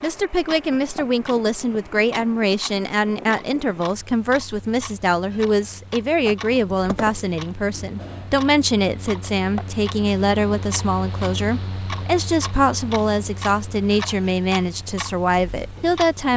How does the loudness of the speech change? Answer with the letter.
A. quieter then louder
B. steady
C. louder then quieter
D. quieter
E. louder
B.